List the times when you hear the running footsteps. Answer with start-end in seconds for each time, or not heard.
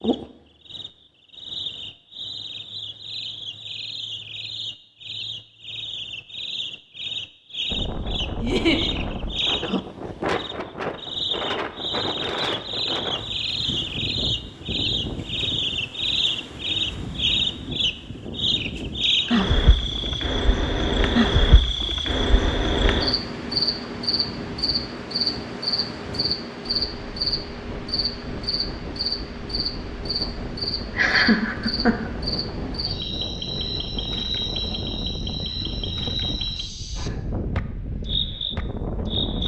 not heard.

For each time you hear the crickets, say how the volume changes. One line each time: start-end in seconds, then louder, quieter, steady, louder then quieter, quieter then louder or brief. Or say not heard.
0.0-39.4 louder then quieter.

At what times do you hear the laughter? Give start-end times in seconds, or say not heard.
8.4-8.8, 30.9-32.1.